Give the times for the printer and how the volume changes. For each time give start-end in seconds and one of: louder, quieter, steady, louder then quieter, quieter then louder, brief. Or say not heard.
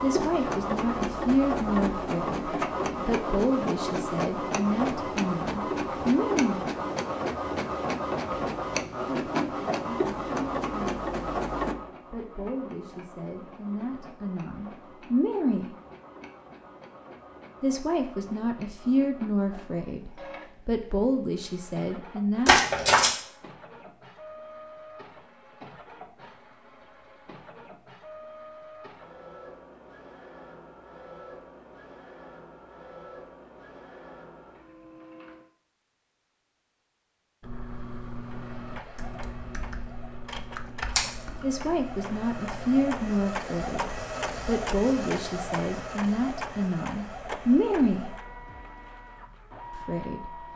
0.0-35.5 quieter
38.2-50.5 louder then quieter.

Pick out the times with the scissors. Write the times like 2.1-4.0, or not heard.
22.4-23.1.